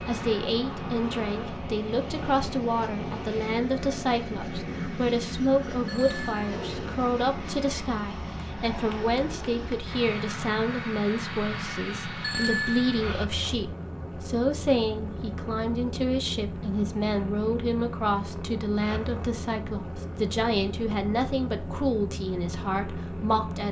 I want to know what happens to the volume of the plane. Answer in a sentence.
The volume of the plane stays about the same.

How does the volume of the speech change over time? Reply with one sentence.
The loudness of the speech stays about the same.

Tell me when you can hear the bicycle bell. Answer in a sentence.
You can hear the bicycle bell from 5.8 to 6.6 s and from 12.2 to 12.9 s.